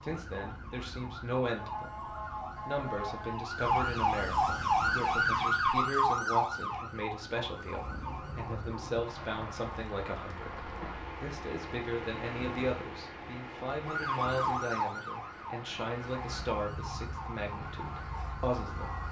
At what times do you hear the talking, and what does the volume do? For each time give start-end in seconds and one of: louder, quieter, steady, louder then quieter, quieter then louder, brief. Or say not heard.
0.0-19.0 steady.